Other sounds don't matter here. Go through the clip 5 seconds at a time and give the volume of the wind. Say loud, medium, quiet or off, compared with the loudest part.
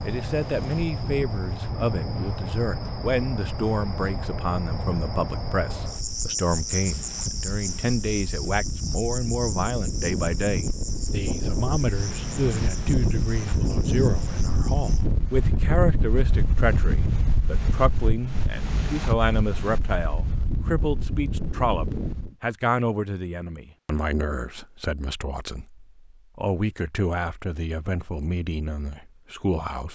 medium, medium, loud, loud, loud, off.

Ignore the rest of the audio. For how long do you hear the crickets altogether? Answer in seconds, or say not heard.
15 s.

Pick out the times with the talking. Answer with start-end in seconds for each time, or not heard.
0.0-29.9.